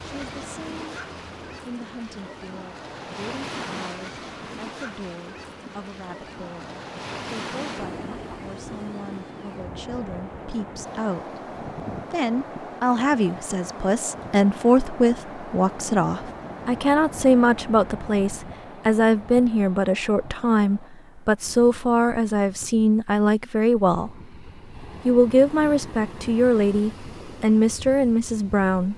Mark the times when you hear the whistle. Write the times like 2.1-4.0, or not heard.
not heard.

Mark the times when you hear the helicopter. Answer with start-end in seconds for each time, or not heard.
0.0-1.6.